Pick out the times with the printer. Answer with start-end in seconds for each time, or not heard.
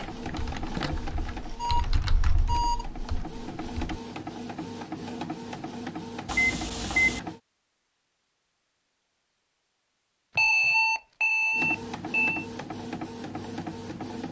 0.0-7.4, 11.5-14.2.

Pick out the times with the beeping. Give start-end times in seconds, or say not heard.
0.8-2.9, 6.2-7.2, 10.3-12.4.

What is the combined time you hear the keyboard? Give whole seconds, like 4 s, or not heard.
4 s.